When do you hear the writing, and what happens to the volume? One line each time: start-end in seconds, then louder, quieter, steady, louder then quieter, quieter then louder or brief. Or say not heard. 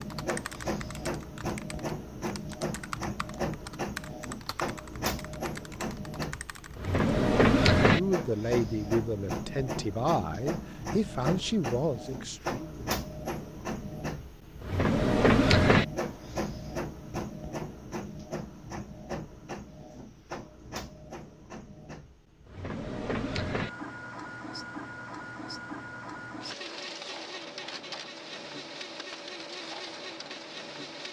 not heard.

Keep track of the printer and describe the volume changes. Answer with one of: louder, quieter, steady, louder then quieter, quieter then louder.
louder then quieter.